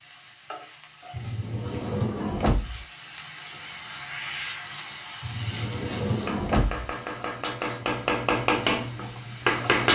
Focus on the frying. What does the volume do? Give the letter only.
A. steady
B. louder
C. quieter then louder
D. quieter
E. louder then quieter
E.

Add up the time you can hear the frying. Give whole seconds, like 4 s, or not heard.
10 s.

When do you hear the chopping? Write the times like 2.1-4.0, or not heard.
6.0-9.9.